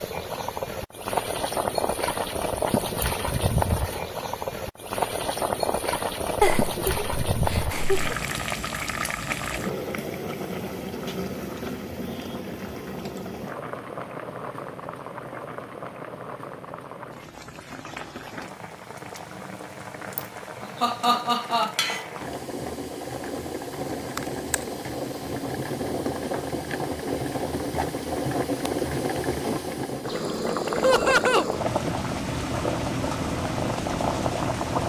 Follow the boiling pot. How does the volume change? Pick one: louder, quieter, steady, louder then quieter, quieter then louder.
quieter then louder.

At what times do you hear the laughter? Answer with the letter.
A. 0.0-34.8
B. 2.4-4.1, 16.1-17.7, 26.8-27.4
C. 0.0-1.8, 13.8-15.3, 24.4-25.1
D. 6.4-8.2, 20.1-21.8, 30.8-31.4
D.